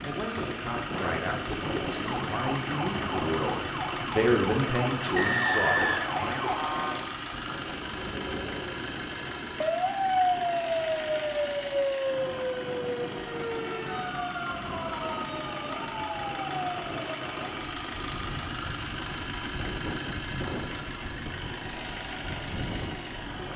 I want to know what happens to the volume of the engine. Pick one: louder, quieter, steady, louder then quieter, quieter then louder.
steady.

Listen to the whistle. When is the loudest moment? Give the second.
6 s.